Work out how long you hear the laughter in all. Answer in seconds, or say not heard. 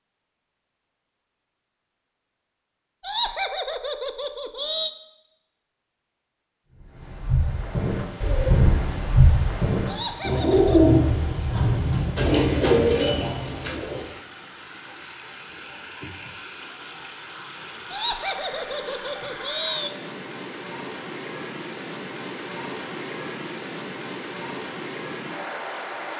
5 s.